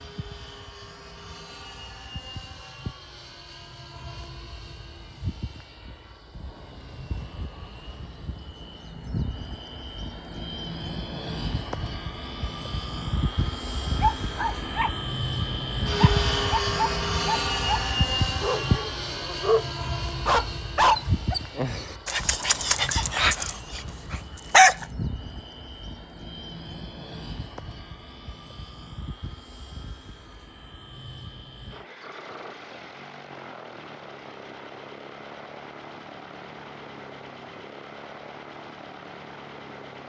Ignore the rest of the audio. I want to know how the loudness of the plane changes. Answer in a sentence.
The loudness of the plane goes up, then down.